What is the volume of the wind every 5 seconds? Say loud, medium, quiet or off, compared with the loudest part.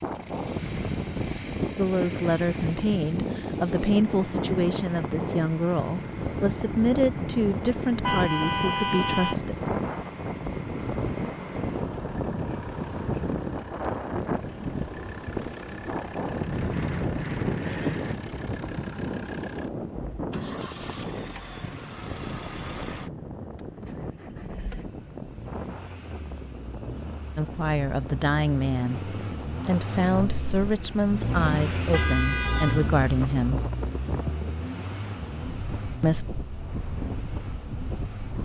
loud, loud, loud, loud, medium, medium, medium, medium.